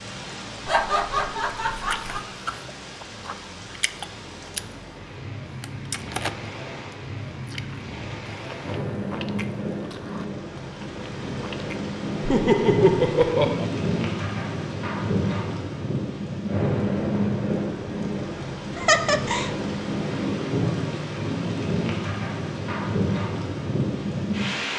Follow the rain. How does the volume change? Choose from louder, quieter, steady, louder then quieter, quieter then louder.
louder.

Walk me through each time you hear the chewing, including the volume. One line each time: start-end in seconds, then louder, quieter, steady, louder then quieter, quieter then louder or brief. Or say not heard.
1.7-4.7 brief
5.6-11.8 quieter.